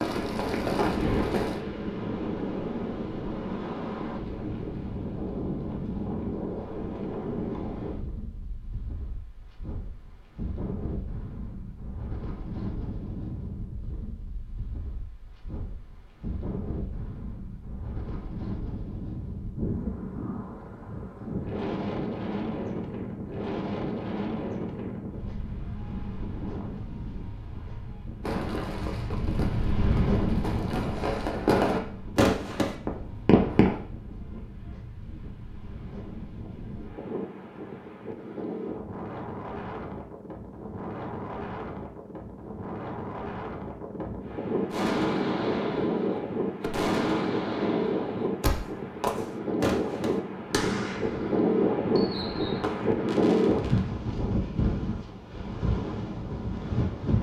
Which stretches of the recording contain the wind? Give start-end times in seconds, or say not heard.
0.0-57.1.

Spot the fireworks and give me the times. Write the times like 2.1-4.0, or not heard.
0.0-1.6, 28.2-33.8, 44.7-54.5.